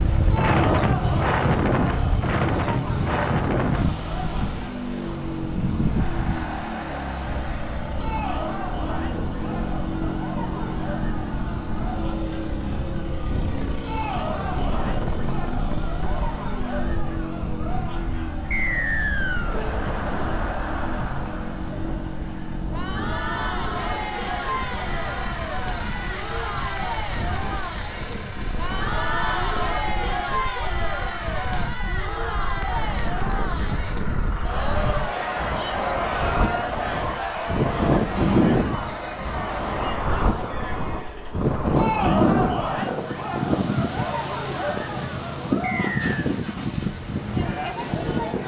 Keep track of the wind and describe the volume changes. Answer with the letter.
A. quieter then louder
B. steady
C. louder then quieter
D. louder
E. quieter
A.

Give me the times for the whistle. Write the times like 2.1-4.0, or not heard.
18.5-19.6, 45.6-46.1.